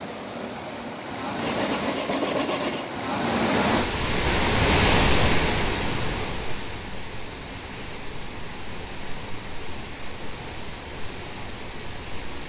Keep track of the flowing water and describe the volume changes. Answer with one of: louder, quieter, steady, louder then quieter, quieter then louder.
louder then quieter.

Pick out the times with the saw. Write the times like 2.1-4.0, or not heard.
1.4-2.9.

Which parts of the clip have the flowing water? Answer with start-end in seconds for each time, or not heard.
0.0-12.4.